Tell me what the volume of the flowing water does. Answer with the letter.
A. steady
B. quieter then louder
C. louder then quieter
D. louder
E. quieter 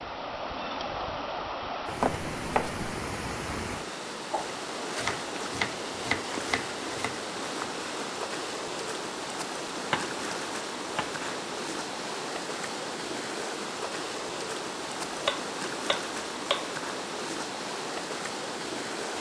A.